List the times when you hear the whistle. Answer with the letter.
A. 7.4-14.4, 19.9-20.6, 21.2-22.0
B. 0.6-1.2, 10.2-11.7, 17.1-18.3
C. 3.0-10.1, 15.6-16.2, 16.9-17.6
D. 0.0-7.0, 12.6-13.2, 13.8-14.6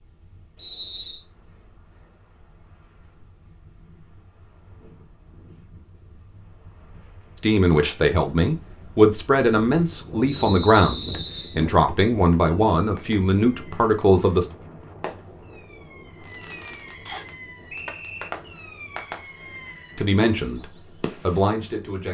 B.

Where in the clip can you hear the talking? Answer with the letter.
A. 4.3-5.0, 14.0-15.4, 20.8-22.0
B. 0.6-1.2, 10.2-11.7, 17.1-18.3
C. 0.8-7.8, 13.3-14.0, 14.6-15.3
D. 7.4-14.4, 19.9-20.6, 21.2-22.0
D.